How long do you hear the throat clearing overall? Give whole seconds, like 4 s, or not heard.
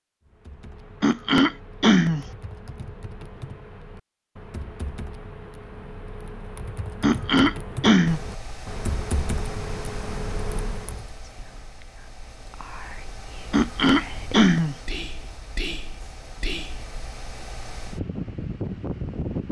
4 s.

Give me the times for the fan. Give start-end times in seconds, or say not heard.
8.1-19.4.